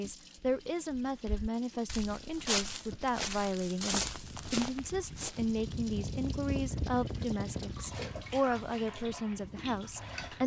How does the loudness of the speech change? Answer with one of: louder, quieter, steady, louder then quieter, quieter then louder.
steady.